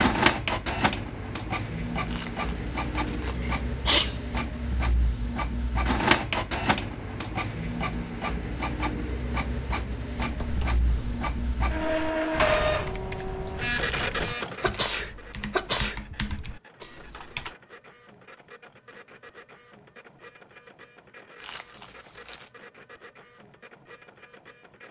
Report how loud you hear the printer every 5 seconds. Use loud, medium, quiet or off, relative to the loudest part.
loud, loud, loud, quiet, quiet.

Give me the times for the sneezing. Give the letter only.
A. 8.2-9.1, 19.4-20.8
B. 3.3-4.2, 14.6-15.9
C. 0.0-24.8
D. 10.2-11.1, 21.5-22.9
B.